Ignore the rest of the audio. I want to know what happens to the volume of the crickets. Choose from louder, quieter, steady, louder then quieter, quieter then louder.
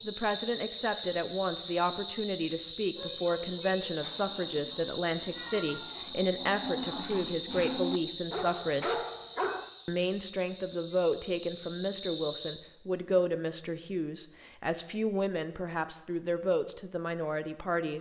quieter.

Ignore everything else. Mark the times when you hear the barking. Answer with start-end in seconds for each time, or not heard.
2.9-9.7.